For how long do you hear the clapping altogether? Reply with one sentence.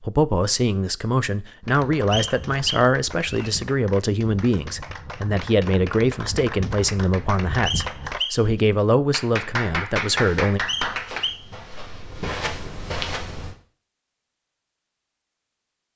The clapping can be heard for 10 seconds in total.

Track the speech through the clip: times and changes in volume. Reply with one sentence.
The speech can be heard from 0.0 to 10.6 s, at a steady volume.